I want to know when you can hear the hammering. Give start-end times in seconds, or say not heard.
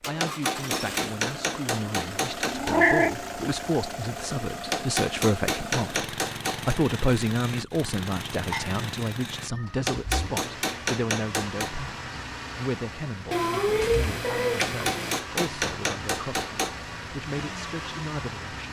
0.2-2.8, 4.7-6.8, 9.8-11.8, 14.6-16.8.